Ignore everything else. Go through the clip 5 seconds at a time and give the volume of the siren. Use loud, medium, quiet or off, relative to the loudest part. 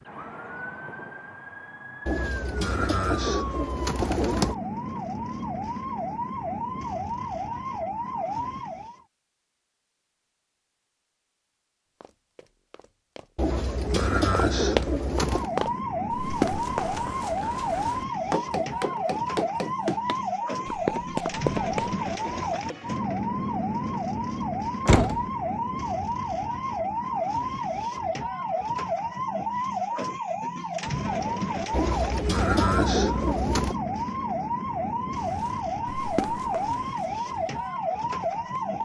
medium, loud, off, loud, loud, loud, loud, loud.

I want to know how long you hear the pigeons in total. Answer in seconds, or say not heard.
7 s.